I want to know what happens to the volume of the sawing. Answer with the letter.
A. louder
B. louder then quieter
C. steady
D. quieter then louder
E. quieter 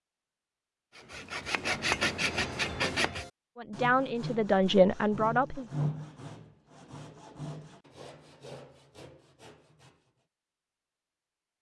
E.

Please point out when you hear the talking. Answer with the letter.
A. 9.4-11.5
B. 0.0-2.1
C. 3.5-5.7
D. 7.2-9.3
C.